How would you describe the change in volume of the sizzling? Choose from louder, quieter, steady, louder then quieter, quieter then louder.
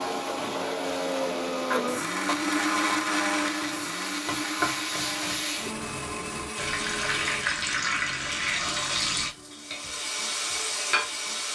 louder.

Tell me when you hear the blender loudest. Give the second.
3 s.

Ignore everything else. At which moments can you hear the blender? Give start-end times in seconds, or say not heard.
0.0-7.5.